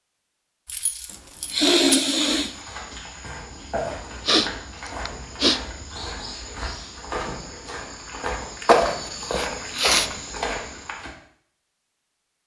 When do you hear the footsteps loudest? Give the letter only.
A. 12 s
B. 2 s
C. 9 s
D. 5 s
C.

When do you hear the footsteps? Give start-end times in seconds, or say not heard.
2.0-11.1.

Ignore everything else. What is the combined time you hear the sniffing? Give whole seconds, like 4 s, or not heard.
4 s.